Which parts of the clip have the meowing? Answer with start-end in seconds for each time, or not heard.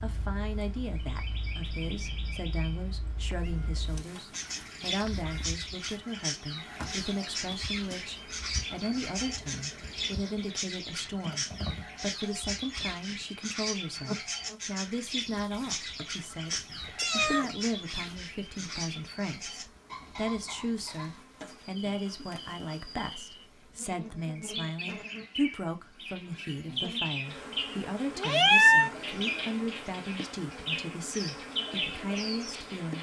3.3-5.5, 16.9-17.7, 28.1-28.9.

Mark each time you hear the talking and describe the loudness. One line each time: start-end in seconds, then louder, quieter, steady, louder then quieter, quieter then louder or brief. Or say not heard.
0.0-32.9 steady.